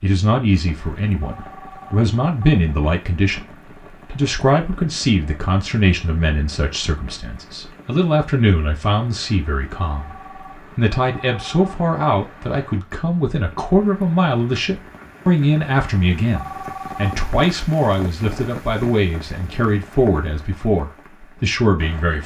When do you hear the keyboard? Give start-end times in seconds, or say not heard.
not heard.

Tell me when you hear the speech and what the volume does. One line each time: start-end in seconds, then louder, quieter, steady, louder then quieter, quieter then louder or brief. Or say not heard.
0.0-22.2 steady.